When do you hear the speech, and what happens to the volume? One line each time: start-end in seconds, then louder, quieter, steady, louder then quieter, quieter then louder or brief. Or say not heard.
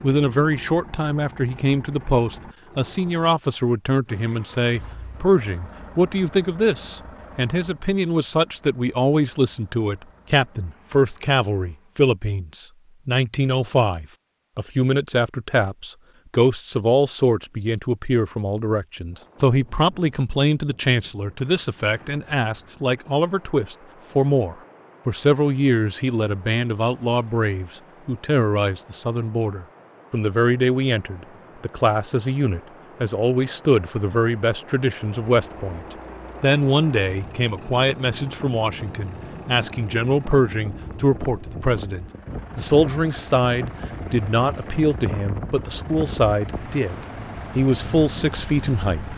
0.0-49.1 steady.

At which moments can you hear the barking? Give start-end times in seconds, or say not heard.
not heard.